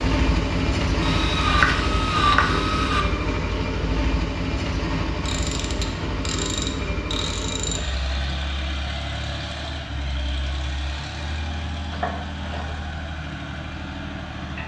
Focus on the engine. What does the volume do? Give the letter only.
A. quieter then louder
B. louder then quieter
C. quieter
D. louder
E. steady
C.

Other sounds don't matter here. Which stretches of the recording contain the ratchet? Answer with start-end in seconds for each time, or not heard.
1.0-3.0, 5.2-7.8, 11.9-12.8.